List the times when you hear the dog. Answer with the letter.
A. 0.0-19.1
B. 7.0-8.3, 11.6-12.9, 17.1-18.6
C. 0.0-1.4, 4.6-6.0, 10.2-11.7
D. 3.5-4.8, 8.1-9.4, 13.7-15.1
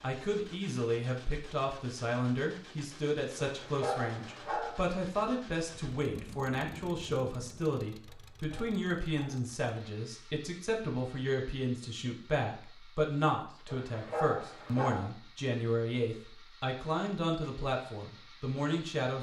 D.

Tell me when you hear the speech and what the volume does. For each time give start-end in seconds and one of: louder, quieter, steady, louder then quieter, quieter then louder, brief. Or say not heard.
0.0-19.1 steady.